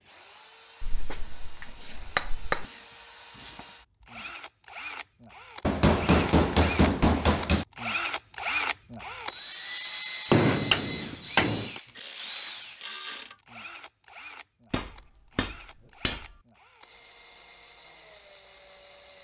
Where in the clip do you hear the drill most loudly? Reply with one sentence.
The volume of the drill peaks at 8 seconds.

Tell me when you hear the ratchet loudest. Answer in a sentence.
The loudest moment of the ratchet is at 13 seconds.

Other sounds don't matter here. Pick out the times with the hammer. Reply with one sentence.
The hammer can be heard from 0.8 to 2.6 s, from 5.6 to 7.7 s, from 10.3 to 11.8 s and from 14.7 to 16.2 s.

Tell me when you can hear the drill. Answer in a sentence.
The drill can be heard from 0.0 to 19.1 s.